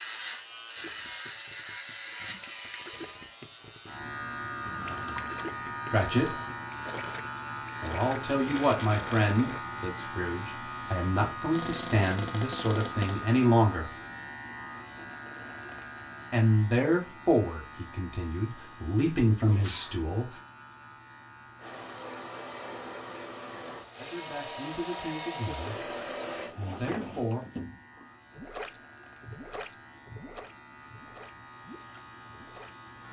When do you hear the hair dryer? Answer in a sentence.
The hair dryer can be heard from 21.6 to 26.6 s.